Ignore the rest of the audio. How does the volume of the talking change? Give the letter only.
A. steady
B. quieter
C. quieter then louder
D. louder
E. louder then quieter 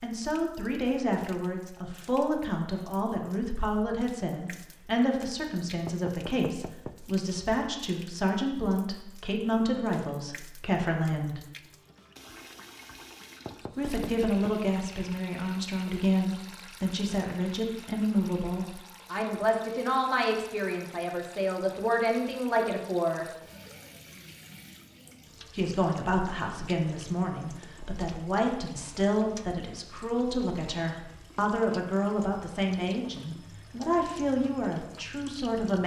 A.